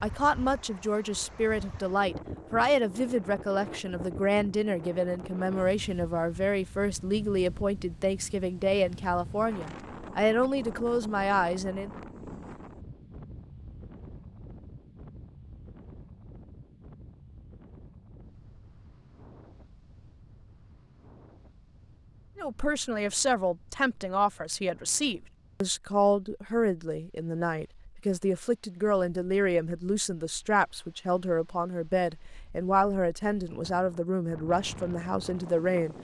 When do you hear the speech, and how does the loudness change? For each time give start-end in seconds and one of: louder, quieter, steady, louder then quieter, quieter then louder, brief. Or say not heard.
0.0-11.9 steady
22.4-35.9 steady.